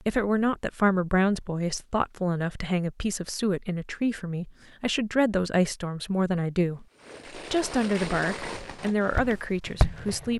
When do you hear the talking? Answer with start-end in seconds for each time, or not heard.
0.1-10.3.